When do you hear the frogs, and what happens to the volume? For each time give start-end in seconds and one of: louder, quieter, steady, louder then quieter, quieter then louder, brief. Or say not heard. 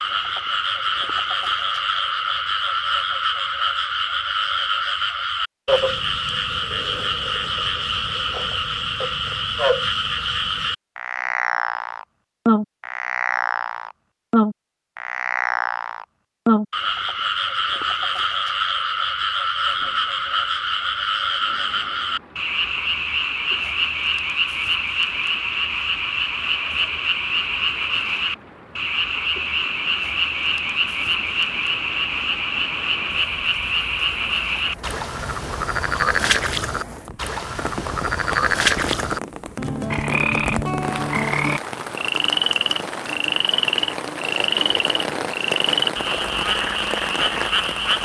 0.0-48.0 steady.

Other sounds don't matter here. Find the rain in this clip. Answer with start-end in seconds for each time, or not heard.
19.6-48.0.